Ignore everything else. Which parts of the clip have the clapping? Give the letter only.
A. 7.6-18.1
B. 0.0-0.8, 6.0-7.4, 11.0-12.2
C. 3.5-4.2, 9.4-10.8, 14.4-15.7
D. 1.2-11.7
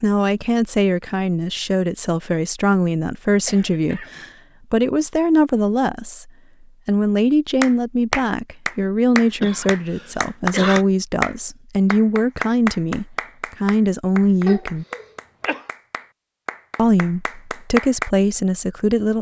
A.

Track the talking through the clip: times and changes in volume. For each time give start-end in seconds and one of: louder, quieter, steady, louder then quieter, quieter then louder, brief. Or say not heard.
0.0-14.8 steady
16.8-19.1 brief.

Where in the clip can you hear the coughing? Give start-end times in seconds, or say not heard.
3.5-4.2, 9.4-10.8, 14.4-15.7.